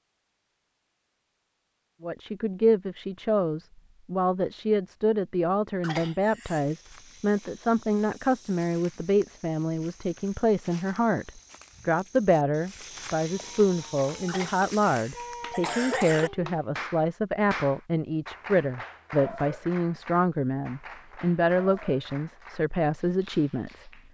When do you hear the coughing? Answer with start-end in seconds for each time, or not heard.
5.8-6.6, 14.2-16.3.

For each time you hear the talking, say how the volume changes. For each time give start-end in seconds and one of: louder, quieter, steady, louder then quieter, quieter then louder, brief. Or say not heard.
2.0-23.9 steady.